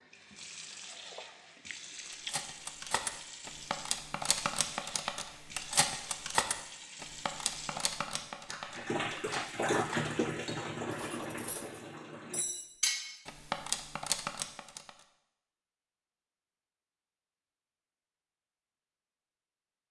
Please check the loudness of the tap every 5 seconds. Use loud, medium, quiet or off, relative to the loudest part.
medium, loud, loud, off.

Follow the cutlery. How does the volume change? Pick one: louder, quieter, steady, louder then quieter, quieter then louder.
quieter then louder.